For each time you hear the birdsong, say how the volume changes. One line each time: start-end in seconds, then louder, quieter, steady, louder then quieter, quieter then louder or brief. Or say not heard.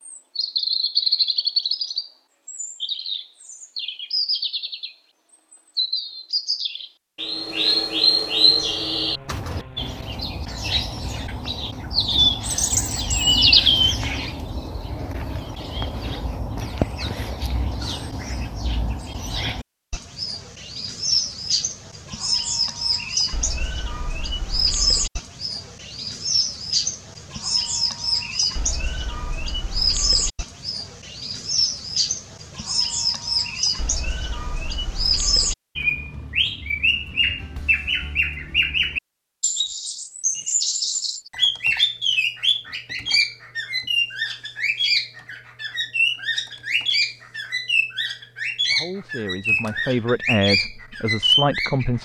0.0-52.0 steady.